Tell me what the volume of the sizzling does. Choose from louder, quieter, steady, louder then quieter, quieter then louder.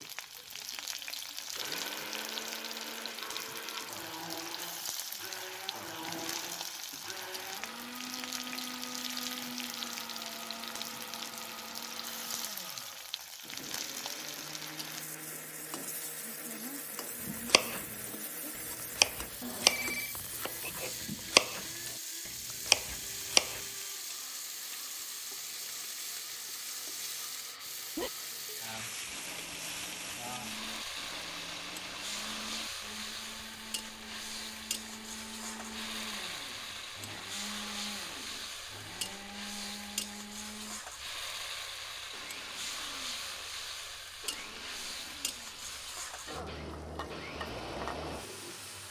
steady.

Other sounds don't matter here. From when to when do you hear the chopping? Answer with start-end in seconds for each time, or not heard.
17.2-23.6.